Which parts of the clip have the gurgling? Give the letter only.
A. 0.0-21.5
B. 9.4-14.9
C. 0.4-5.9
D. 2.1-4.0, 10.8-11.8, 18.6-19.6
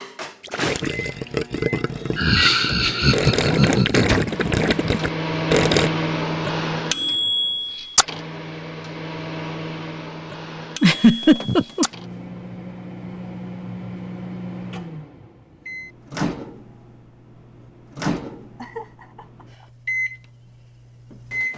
C.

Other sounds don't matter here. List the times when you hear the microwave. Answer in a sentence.
You can hear the microwave from 0.0 to 21.5 s.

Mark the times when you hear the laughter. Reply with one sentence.
You can hear the laughter from 2.1 to 4.0 s, from 10.8 to 11.8 s and from 18.6 to 19.6 s.